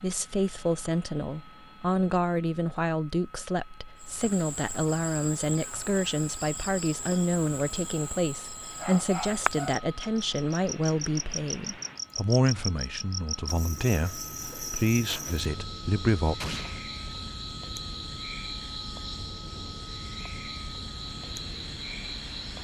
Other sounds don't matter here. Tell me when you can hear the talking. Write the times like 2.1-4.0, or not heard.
0.0-16.6.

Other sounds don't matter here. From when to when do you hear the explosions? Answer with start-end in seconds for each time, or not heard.
16.4-16.8.